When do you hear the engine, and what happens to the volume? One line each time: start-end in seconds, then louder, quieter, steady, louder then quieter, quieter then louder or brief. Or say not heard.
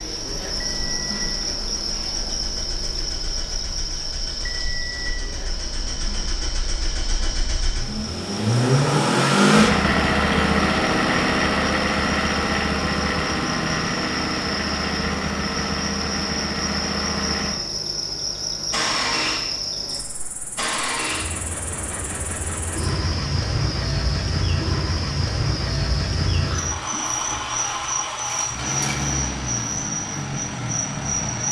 0.1-31.4 louder then quieter.